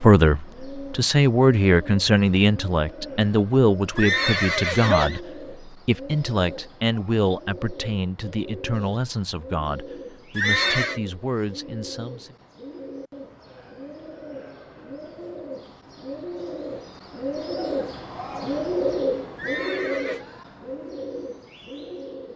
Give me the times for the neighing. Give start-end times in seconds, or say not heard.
4.0-5.2, 10.3-11.0, 19.4-20.2.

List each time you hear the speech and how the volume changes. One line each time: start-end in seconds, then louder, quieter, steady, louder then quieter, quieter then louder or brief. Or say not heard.
0.0-12.3 quieter.